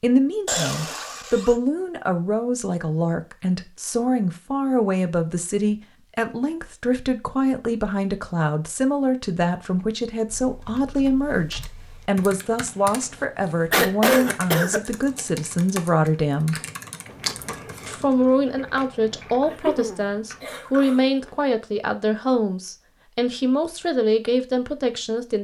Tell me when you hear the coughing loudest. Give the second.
14 s.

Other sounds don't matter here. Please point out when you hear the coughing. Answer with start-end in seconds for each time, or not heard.
0.5-1.6, 13.7-14.8, 19.4-21.0.